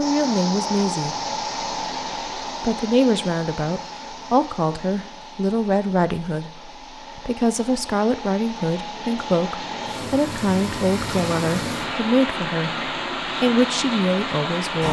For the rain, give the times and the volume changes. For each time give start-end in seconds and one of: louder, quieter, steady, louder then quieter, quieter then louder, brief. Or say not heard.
0.0-14.8 quieter then louder.